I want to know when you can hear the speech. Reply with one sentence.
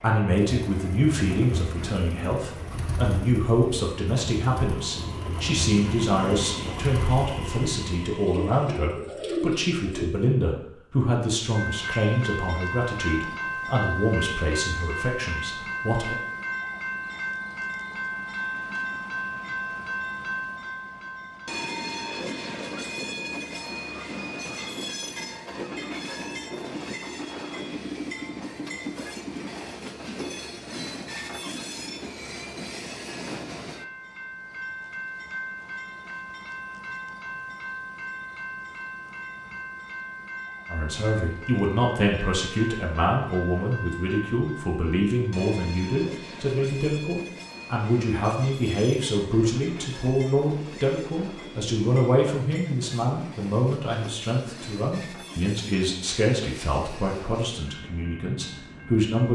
The speech can be heard from 0.0 to 16.1 s and from 40.7 to 59.3 s.